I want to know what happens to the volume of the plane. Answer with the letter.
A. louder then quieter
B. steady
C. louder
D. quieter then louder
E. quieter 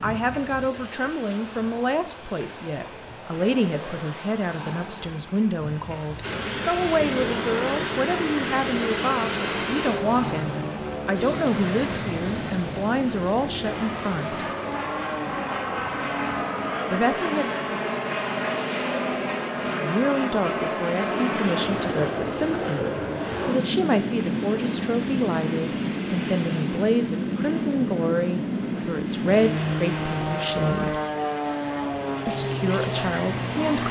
B.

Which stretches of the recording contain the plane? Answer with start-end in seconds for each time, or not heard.
6.2-33.8.